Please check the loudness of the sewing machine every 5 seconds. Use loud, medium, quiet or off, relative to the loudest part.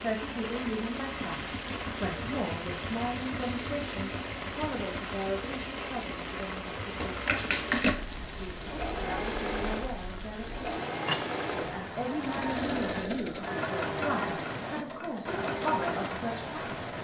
medium, loud, loud, loud.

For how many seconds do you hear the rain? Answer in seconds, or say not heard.
17 s.